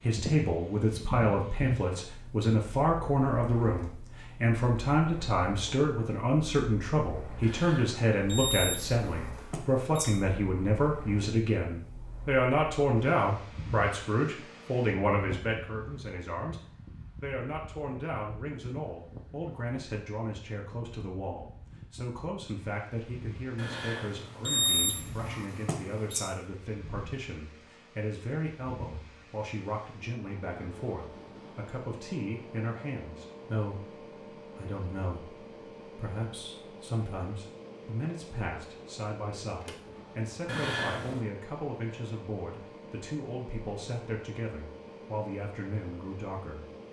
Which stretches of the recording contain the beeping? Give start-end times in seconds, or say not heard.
7.4-10.1, 23.6-26.2, 40.5-41.2.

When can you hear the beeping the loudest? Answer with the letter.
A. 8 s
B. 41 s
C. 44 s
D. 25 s
D.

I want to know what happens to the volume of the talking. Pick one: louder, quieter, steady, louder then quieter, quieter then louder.
quieter.